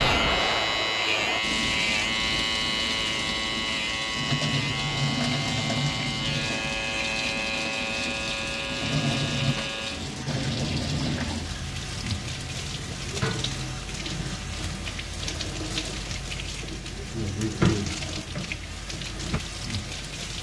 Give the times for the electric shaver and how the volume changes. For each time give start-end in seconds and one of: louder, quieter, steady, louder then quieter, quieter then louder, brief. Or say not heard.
0.0-20.3 quieter.